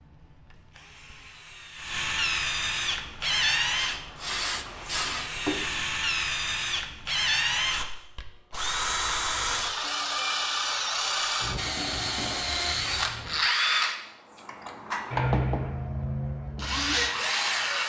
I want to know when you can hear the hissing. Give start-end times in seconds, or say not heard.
2.9-5.8.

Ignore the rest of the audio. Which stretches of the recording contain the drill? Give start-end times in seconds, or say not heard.
0.0-17.8.